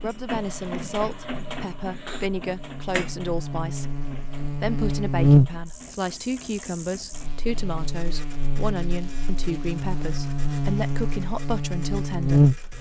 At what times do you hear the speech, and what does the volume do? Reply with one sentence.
The speech can be heard from 0.0 to 12.4 s, at a steady volume.